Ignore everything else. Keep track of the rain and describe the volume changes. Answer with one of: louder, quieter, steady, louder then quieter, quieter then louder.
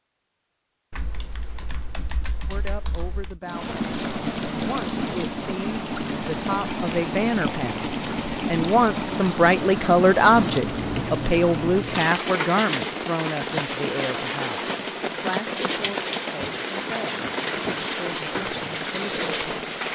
steady.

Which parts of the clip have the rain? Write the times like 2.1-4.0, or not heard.
3.4-19.9.